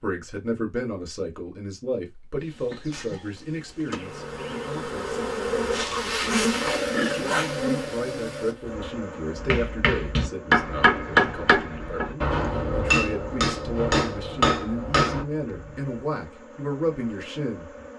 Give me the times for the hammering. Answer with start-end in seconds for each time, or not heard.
9.3-15.2.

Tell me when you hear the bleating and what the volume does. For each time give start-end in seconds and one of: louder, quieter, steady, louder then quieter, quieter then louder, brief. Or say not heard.
not heard.